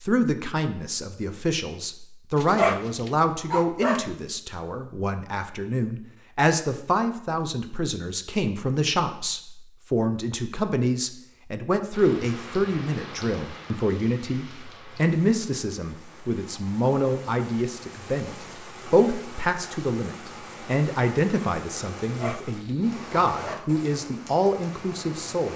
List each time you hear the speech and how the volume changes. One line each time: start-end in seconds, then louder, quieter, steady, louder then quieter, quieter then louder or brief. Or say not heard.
0.0-25.5 steady.